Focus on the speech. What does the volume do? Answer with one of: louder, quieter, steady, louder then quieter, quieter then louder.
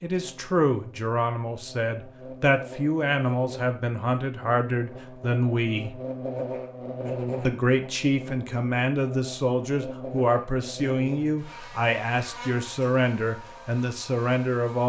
steady.